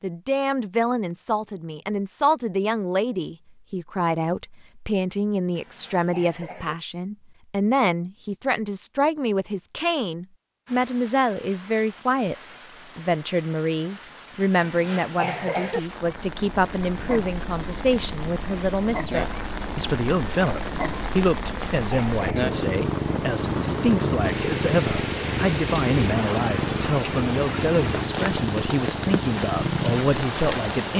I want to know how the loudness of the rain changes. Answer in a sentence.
The volume of the rain goes up.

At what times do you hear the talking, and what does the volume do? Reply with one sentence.
The talking can be heard from 0.0 to 30.9 s, at a steady volume.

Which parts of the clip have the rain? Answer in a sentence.
You can hear the rain from 10.7 to 30.9 s.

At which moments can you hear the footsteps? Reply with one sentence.
You can't hear the footsteps here.